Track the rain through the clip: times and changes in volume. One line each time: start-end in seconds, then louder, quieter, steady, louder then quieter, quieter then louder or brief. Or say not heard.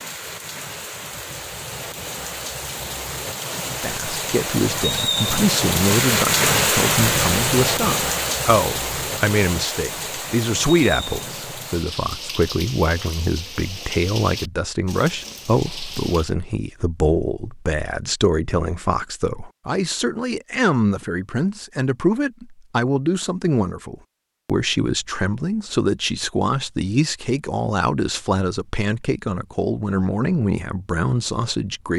0.0-16.4 louder then quieter.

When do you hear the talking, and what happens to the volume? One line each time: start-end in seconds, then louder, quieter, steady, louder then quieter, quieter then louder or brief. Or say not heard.
3.8-31.9 steady.